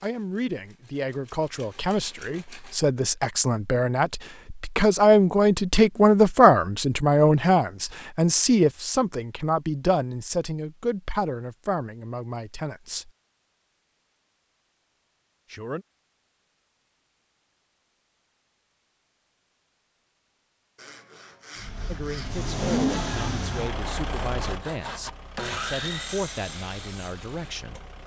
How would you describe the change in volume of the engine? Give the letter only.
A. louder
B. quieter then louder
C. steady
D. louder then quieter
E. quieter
E.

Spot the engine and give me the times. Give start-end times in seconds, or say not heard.
21.6-28.0.